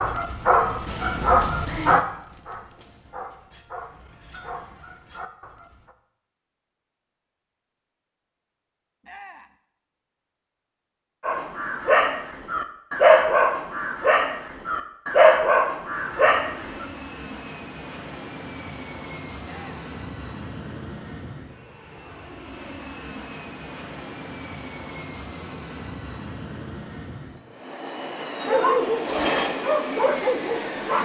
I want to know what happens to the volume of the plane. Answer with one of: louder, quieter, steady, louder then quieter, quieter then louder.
louder.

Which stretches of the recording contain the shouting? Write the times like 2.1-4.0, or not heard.
9.0-9.6, 19.4-19.9.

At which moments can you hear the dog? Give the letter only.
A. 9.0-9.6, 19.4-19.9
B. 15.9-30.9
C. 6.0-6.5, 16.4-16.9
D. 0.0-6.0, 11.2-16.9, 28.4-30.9
D.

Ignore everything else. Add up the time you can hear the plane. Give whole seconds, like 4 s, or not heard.
15 s.